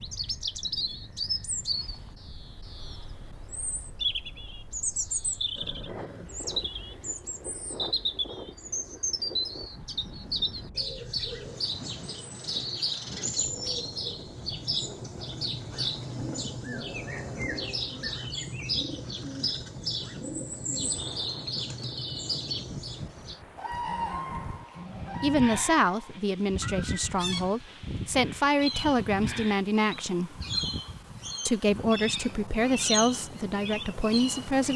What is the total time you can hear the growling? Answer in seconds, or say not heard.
4 s.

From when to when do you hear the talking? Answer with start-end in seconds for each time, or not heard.
25.2-30.4, 31.4-34.7.